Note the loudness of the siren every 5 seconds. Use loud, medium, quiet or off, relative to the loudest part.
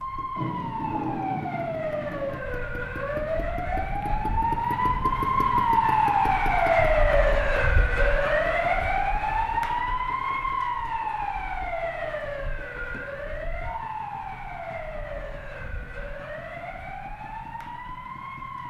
medium, loud, medium, quiet.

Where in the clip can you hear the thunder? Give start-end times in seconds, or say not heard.
0.3-2.4.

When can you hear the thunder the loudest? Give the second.
1 s.